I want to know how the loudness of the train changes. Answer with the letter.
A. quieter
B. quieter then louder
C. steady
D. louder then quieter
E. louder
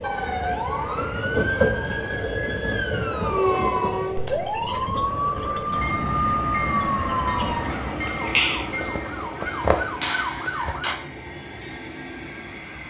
A.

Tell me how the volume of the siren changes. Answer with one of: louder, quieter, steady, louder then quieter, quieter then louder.
steady.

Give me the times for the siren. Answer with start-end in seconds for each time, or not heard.
0.0-11.0.